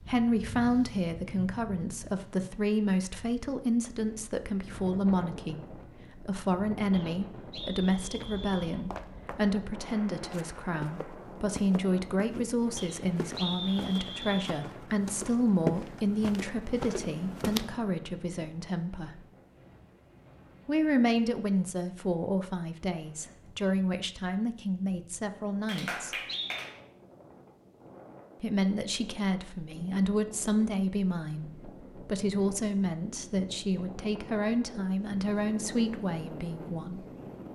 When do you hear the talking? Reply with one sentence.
You can hear the talking from 0.0 to 19.2 s, from 20.6 to 26.1 s and from 28.4 to 37.0 s.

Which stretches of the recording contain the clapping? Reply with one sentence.
You can hear the clapping from 25.6 to 26.8 s.